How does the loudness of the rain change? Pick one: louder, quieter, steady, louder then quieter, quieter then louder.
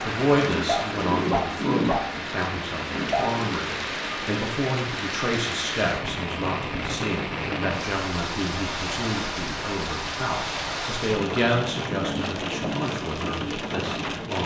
steady.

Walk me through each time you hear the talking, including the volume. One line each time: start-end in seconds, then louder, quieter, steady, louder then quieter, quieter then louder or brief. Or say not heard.
0.0-14.4 steady.